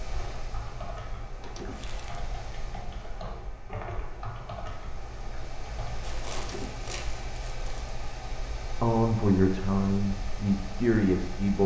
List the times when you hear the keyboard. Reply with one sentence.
The keyboard can be heard from 0.1 to 6.0 s.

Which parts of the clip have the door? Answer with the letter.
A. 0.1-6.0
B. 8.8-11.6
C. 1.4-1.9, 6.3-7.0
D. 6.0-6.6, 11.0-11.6
C.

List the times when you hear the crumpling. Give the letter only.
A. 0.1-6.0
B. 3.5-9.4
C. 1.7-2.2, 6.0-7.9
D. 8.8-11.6
C.